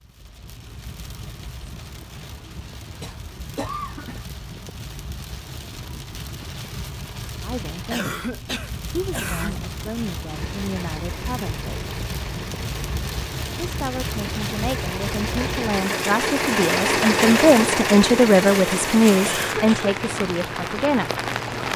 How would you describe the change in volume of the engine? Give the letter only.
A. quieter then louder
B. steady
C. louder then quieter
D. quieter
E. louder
C.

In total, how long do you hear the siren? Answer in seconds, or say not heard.
not heard.